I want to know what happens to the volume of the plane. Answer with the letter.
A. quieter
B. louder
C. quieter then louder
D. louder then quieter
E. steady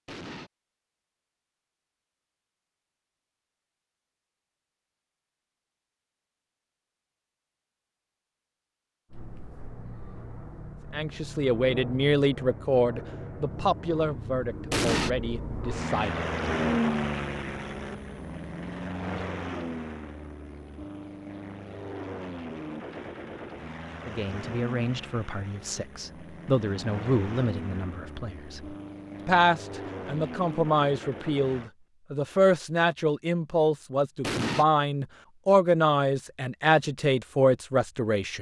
D.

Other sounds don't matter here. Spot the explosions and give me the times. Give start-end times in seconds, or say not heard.
0.1-0.5, 14.7-15.1, 34.2-34.6.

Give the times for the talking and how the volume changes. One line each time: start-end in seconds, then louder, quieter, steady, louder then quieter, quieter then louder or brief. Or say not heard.
10.9-16.3 quieter
24.1-38.3 louder.